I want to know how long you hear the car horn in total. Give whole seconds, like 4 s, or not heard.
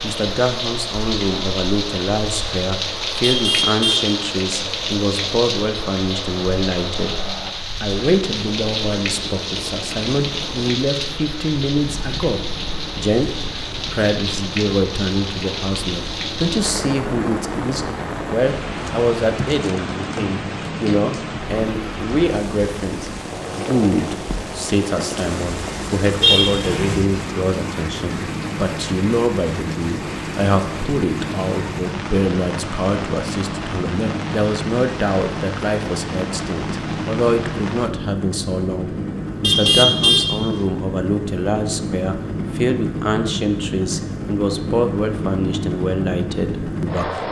3 s.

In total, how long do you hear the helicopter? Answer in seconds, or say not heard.
47 s.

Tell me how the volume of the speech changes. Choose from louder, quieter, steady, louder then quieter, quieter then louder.
steady.